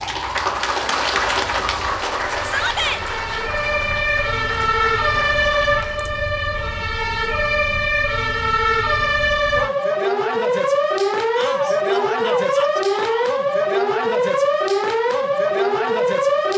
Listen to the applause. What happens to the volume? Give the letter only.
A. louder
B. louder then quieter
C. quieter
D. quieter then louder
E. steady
C.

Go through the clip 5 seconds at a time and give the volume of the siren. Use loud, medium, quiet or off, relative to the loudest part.
medium, loud, loud, loud.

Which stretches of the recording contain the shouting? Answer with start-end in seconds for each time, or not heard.
2.4-3.0, 11.3-13.2.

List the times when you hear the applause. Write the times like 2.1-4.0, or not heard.
0.0-6.0.